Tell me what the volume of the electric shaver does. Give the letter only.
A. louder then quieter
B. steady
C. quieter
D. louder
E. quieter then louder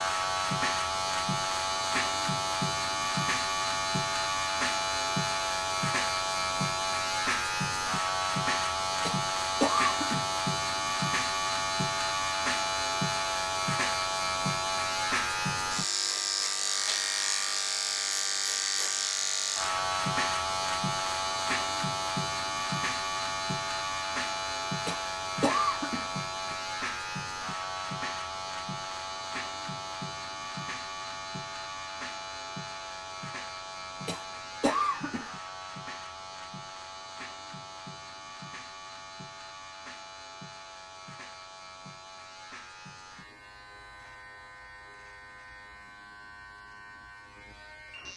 C.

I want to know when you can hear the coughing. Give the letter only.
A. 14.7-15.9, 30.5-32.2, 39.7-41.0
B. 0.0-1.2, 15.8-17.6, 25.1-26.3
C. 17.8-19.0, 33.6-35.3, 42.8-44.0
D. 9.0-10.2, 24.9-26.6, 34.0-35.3
D.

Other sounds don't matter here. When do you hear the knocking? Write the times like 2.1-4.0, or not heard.
not heard.